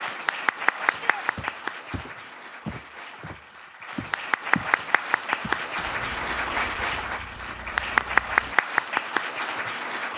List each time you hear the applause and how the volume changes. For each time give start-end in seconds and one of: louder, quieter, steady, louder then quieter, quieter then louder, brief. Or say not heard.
0.0-10.1 quieter then louder.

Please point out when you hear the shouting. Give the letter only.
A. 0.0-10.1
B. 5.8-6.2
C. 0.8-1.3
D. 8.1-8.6
C.